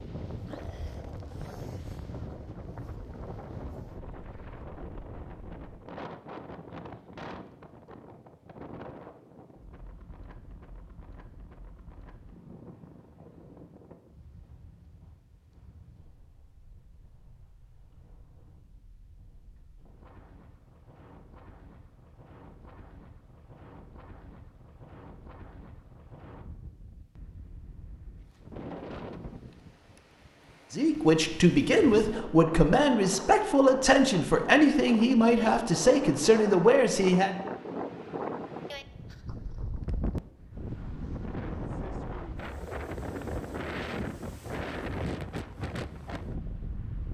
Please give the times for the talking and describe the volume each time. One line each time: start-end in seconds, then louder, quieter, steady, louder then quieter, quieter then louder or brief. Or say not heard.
30.7-37.4 steady.